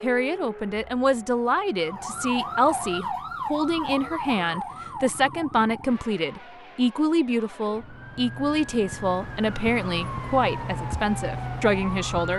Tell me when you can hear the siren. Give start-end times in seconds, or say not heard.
1.8-12.3.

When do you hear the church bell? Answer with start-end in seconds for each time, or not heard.
not heard.